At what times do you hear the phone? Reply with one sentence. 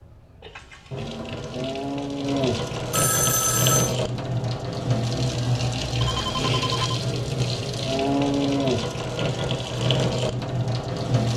You can hear the phone from 2.9 to 4.0 s and from 6.0 to 7.1 s.